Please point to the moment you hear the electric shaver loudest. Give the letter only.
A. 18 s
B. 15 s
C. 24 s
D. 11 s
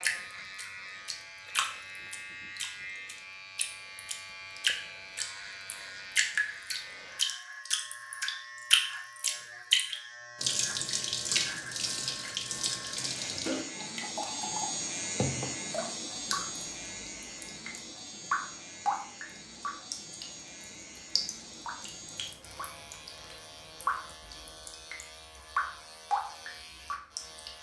B.